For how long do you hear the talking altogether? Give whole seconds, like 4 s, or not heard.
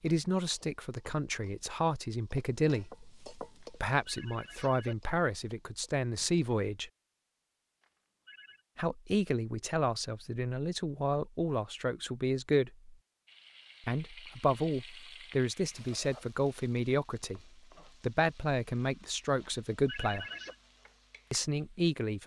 18 s.